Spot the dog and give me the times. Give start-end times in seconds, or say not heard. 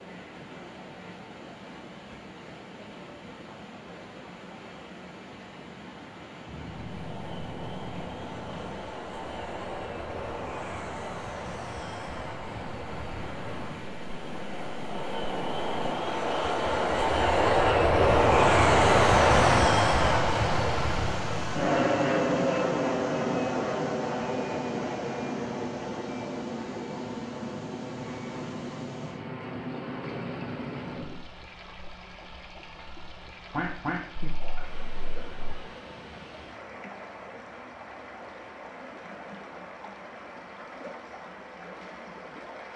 not heard.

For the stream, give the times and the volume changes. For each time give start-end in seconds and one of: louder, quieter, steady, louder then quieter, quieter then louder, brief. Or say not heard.
0.0-42.7 louder then quieter.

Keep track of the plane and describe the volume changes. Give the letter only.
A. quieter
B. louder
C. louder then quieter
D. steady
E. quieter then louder
C.